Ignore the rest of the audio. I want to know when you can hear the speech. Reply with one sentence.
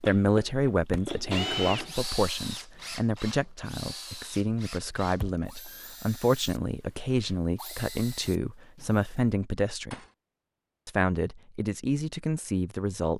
You can hear the speech from 0.0 to 9.9 s and from 10.8 to 13.1 s.